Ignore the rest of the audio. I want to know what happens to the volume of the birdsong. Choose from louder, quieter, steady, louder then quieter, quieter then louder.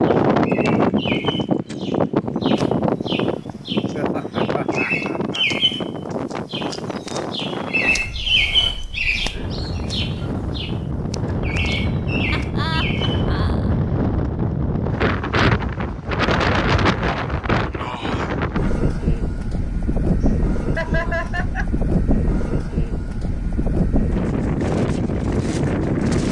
louder then quieter.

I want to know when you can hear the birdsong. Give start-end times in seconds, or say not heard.
0.0-13.4.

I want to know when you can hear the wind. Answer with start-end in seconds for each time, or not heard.
0.0-26.2.